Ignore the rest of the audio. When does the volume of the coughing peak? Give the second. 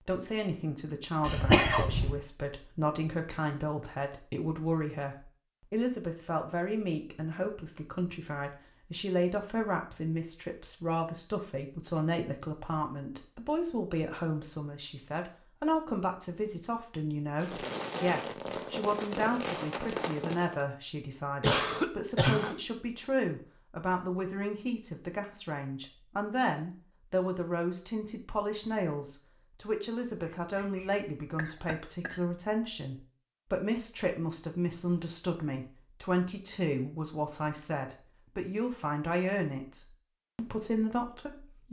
2 s.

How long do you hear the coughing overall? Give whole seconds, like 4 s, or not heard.
4 s.